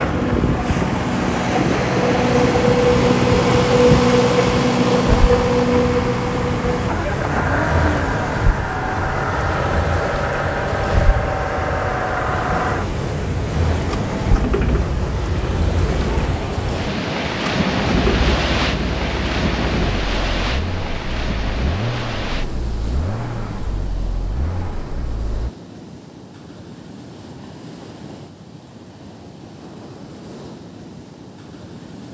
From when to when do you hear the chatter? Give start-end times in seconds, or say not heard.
not heard.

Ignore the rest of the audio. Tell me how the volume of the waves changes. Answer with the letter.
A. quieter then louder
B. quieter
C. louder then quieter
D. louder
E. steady
B.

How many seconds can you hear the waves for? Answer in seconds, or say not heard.
32 s.